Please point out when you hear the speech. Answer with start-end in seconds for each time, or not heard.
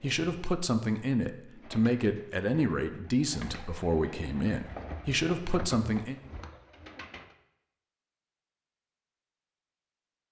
0.0-6.2.